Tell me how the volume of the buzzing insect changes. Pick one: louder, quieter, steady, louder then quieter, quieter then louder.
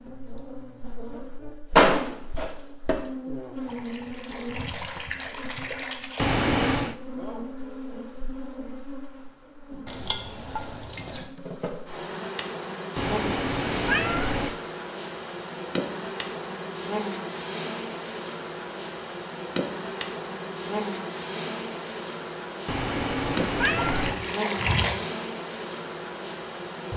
quieter then louder.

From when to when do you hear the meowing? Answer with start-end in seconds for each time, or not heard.
6.2-7.0, 12.9-14.6, 22.6-24.2.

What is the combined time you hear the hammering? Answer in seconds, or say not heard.
not heard.